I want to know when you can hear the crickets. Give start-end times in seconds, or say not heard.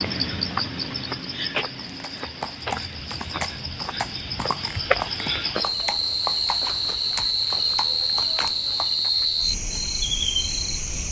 0.0-11.0.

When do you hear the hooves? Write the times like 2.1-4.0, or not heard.
1.9-9.1.